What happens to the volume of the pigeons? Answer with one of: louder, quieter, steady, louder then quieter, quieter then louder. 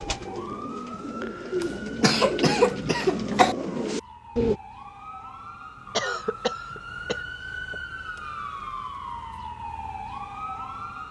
louder.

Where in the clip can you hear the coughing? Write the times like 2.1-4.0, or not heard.
1.6-3.5, 6.0-7.2.